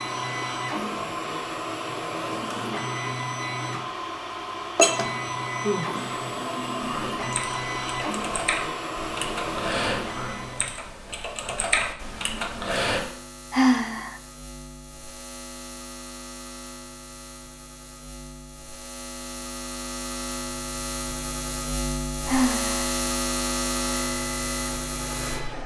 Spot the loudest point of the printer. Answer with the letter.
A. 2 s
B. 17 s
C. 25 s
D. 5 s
D.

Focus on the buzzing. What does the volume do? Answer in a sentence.
The volume of the buzzing goes up.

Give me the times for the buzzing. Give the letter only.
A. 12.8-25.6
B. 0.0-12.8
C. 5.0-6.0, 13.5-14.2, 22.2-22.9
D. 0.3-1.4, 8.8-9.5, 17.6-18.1
A.